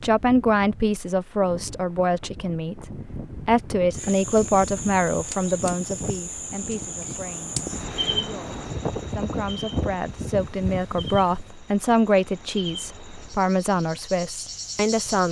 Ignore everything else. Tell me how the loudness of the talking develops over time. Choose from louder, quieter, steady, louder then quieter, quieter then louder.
quieter then louder.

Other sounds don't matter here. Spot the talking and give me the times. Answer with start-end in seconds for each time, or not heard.
0.0-15.2.